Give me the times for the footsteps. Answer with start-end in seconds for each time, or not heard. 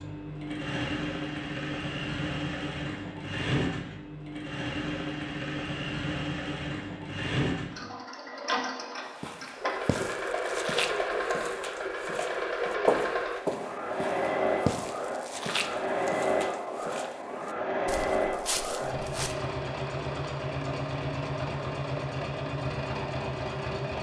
9.0-19.4.